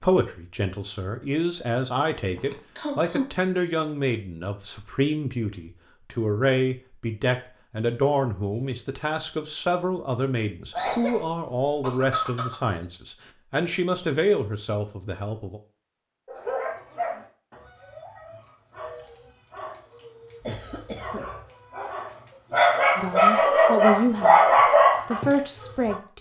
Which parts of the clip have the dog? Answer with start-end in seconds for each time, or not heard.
16.2-25.9.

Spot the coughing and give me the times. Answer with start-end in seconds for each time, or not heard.
2.4-3.3, 10.7-12.6, 20.4-21.3.